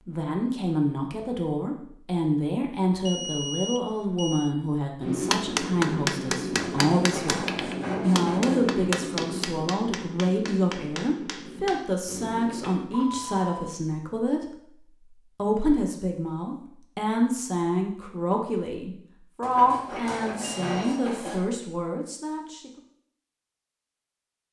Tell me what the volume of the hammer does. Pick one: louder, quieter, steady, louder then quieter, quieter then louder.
quieter.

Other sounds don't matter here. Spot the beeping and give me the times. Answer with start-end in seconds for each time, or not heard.
3.0-4.5, 12.9-13.8, 20.4-21.1.